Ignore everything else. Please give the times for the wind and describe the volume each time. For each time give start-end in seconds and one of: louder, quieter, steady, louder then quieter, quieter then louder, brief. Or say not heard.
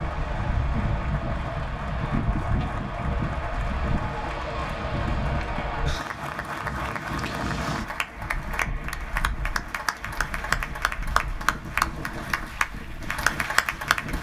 0.0-14.1 quieter.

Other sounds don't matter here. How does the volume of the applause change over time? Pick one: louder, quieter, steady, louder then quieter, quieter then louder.
louder.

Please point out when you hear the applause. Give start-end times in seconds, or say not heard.
0.0-14.1.